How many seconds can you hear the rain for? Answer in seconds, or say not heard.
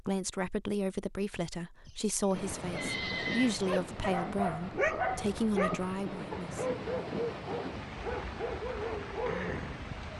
8 s.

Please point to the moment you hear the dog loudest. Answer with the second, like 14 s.
5 s.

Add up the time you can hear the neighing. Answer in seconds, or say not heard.
2 s.